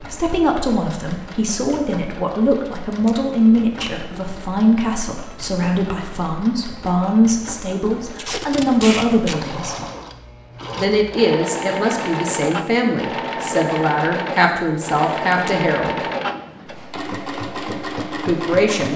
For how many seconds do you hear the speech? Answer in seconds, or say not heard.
16 s.